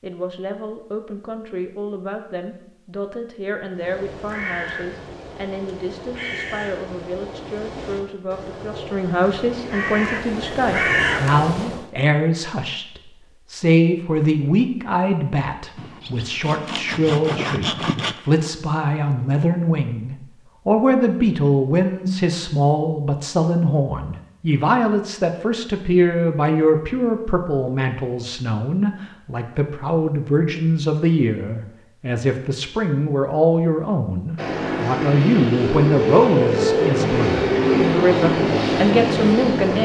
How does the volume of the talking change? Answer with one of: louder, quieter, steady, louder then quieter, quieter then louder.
louder.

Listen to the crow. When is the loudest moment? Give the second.
11 s.